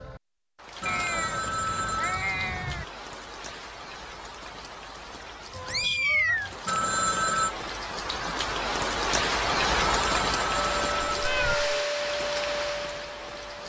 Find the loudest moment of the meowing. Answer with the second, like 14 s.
6 s.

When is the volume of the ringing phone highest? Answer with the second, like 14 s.
7 s.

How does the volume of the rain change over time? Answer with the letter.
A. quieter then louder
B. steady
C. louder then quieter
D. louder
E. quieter
C.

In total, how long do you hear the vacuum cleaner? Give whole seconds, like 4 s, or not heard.
3 s.